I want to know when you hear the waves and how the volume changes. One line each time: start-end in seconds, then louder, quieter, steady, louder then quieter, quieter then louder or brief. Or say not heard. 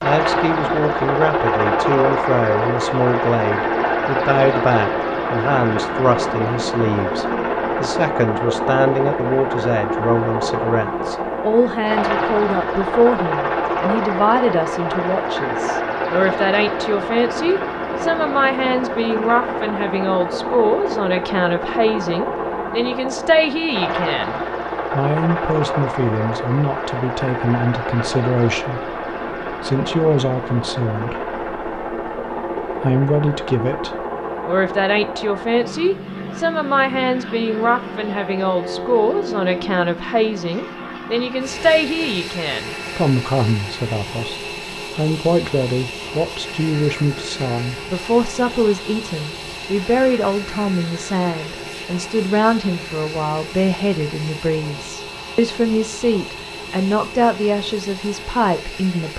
not heard.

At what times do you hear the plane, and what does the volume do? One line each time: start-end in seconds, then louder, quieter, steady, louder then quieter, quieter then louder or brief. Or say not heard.
0.0-59.1 quieter.